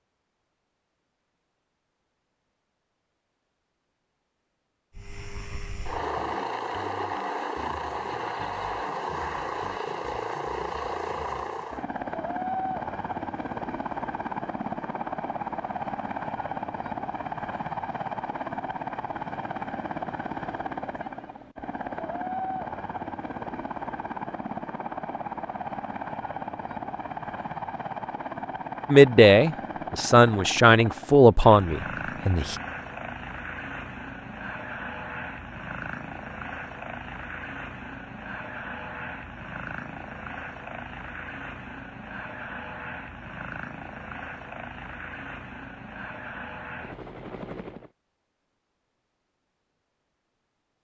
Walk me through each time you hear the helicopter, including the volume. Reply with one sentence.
The helicopter can be heard from 5.0 to 47.9 s, getting quieter.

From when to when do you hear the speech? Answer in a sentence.
You can hear the speech from 28.9 to 32.5 s.